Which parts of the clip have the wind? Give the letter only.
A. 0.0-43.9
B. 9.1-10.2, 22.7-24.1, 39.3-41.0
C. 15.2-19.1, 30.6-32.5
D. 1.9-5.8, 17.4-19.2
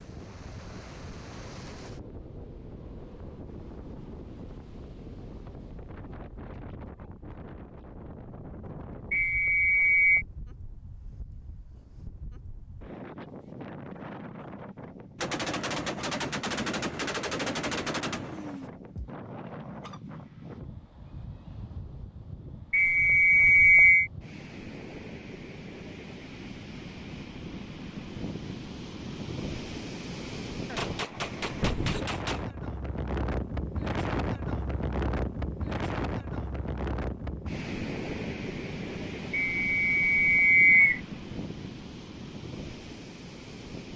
A.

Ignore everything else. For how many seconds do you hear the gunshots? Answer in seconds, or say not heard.
6 s.